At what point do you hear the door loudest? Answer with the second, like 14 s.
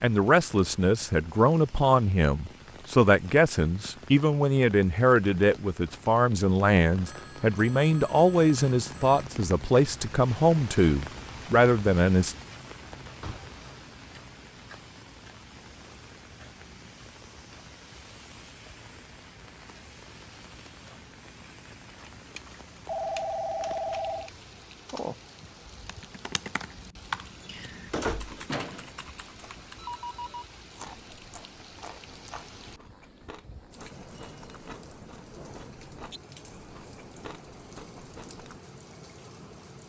28 s.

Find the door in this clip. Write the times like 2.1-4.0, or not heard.
13.0-13.7, 27.4-28.5.